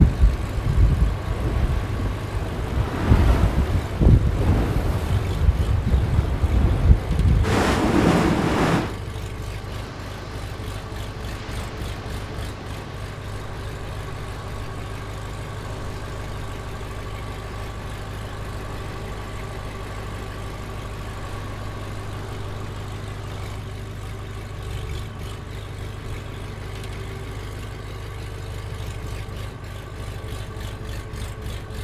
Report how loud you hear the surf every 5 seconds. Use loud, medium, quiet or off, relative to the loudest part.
loud, loud, quiet, quiet, quiet, off, off.